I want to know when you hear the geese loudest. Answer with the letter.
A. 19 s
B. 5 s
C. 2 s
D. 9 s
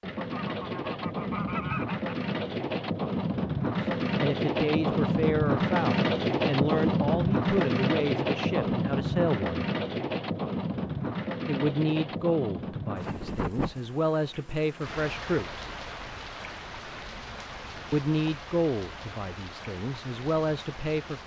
C.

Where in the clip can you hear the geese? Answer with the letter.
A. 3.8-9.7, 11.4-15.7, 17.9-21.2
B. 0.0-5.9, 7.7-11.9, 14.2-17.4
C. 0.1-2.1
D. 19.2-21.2
C.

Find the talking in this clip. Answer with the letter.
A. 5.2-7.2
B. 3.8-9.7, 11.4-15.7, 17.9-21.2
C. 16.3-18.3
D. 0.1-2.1
B.